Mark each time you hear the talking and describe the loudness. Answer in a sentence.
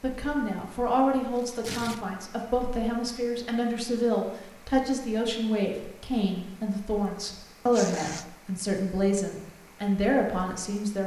You can hear the talking from 0.0 to 11.0 s, at a steady volume.